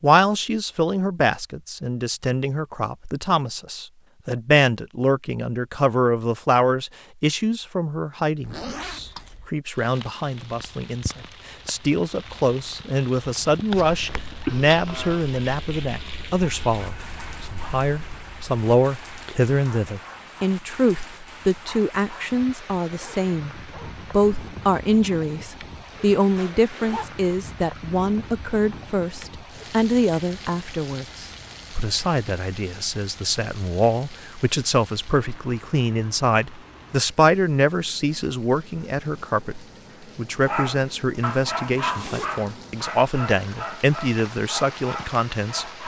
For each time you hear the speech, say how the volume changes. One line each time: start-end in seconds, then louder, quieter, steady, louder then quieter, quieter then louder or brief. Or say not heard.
0.0-45.8 steady.